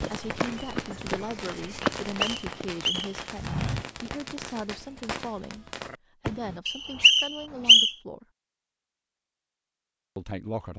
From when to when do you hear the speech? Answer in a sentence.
The speech can be heard from 0.1 to 8.2 s and from 10.2 to 10.7 s.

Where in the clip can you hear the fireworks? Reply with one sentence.
You can hear the fireworks from 0.0 to 6.6 s.